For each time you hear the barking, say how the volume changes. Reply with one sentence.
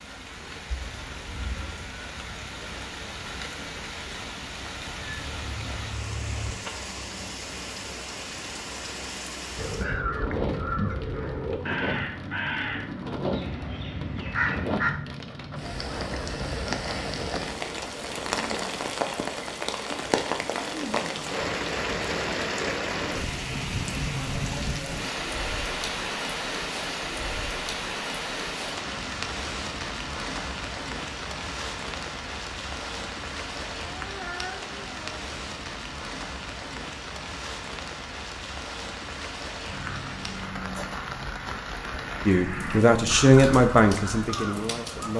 The barking can't be heard in this clip.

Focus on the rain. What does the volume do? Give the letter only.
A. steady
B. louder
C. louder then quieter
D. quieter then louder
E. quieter
C.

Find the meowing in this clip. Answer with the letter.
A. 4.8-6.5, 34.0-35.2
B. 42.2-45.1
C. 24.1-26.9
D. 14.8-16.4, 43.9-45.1
A.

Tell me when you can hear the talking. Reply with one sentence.
The talking can be heard from 42.2 to 45.1 s.